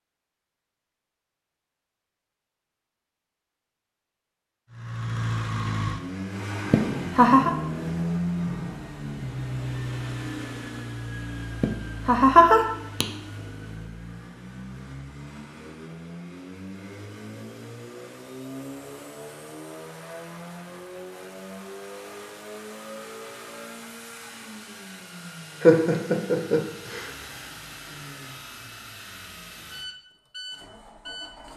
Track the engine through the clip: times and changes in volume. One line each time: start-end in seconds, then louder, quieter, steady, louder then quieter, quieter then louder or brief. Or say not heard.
4.7-31.5 quieter.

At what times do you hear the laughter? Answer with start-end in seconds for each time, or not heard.
6.7-7.5, 11.6-13.1, 25.6-27.1.